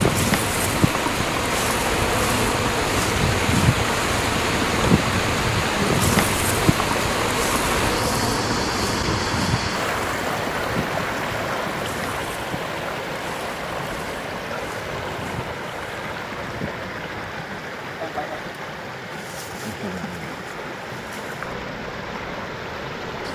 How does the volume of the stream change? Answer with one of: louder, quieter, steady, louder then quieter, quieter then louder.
quieter.